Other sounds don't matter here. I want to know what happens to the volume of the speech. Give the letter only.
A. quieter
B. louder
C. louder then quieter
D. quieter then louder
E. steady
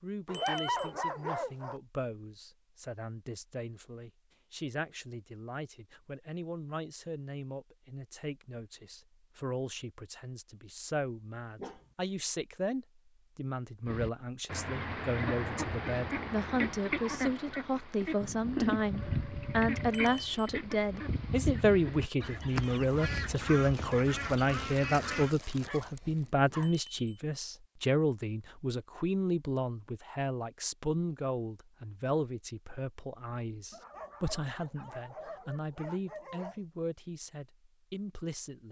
C.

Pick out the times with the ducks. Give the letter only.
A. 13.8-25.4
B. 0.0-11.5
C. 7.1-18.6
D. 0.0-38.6
A.